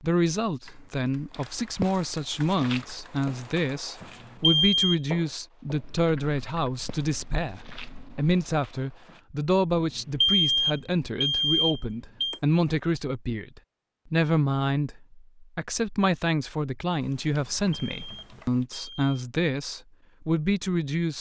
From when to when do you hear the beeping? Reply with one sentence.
The beeping can be heard from 4.2 to 5.0 s, from 9.8 to 12.4 s and from 17.5 to 19.2 s.